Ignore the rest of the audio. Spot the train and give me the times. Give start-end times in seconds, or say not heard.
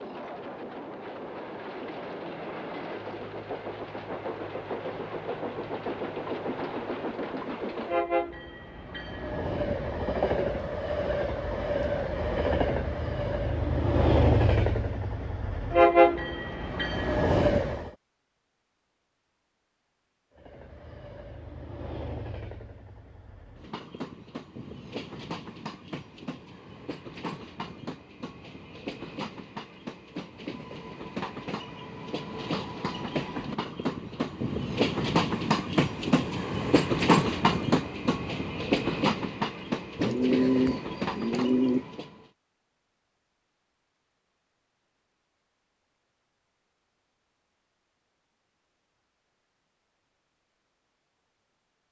0.0-17.9, 20.4-42.3.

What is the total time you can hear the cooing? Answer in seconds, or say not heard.
2 s.